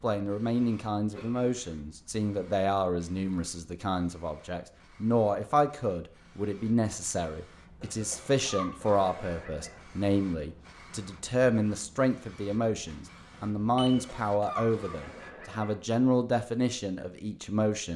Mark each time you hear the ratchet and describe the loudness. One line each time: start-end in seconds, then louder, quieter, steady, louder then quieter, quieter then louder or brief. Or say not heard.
not heard.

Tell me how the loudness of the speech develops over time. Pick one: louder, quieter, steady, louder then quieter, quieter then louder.
steady.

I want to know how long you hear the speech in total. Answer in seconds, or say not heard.
18 s.